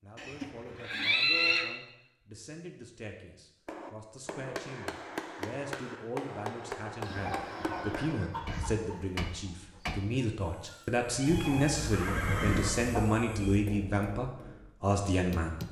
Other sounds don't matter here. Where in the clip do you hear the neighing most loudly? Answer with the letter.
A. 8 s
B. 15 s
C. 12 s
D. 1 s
D.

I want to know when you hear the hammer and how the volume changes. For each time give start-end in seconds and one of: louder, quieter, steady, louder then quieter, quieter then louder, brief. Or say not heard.
3.6-10.1 steady
13.4-15.6 brief.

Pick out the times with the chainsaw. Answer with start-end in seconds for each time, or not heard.
not heard.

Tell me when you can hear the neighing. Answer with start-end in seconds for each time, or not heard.
0.1-1.6, 11.2-13.1.